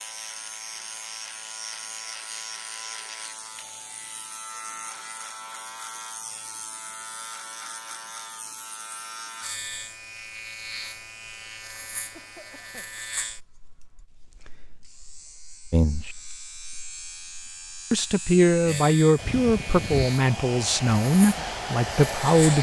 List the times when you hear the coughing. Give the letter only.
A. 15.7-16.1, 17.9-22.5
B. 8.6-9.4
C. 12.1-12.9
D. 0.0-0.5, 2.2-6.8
C.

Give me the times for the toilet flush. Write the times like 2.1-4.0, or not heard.
not heard.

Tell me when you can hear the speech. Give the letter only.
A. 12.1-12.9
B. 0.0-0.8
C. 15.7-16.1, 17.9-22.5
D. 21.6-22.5
C.